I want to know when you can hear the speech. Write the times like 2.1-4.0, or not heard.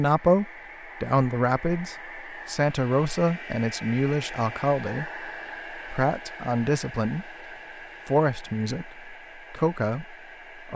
0.0-7.3, 8.1-10.7.